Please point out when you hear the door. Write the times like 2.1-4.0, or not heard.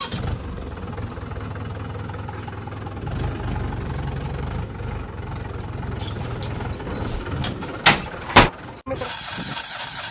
6.0-8.5.